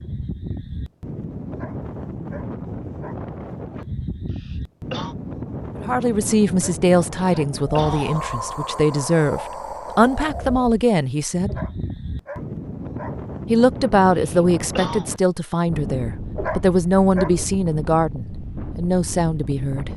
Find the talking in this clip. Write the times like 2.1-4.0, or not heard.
5.8-11.5, 13.4-19.9.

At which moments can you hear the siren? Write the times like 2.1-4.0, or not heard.
not heard.